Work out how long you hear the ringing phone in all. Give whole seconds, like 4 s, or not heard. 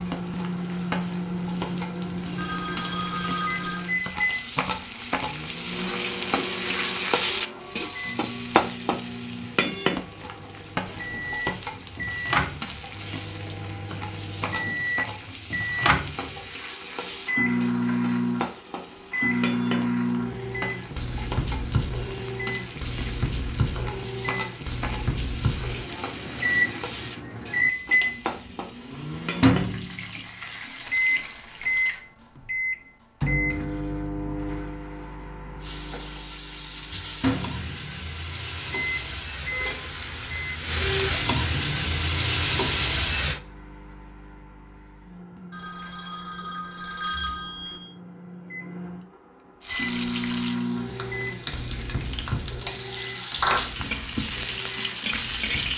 4 s.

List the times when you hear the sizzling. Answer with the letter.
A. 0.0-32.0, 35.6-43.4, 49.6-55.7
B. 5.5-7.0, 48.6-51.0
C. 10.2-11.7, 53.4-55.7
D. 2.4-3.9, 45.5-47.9
A.